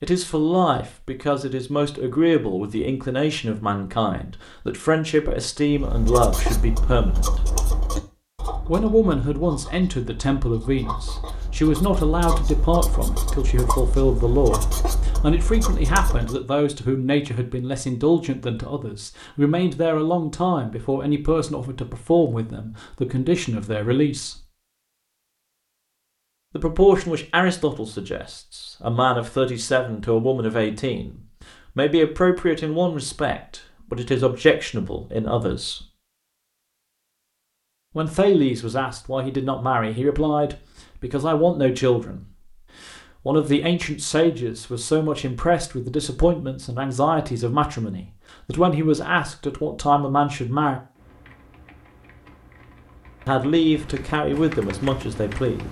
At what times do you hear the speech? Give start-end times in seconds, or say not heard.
0.0-7.4, 8.7-24.4, 26.6-35.9, 38.0-50.8, 53.2-55.6.